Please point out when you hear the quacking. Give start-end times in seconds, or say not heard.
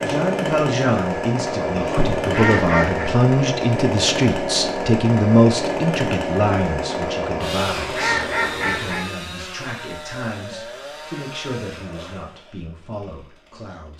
1.6-3.1, 7.2-9.1.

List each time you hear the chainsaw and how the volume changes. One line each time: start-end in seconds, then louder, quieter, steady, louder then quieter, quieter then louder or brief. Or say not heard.
0.0-13.9 quieter.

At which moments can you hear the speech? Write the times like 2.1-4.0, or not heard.
0.0-13.9.